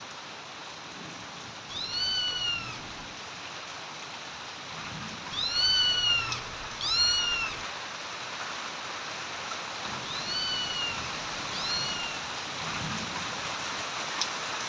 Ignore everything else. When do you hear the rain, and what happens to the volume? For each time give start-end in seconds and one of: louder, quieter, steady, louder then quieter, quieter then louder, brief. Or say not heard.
0.0-14.6 louder.